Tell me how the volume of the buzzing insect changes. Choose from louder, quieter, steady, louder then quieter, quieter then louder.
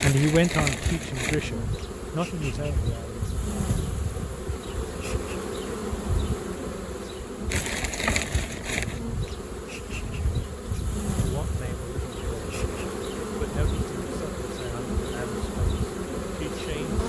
steady.